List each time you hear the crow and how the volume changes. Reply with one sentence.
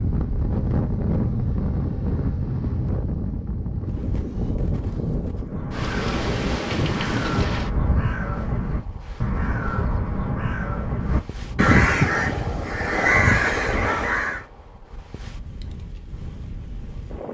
The crow can be heard from 5.4 to 14.4 s, getting louder.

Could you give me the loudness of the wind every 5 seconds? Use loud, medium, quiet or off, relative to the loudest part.
loud, loud, quiet, quiet.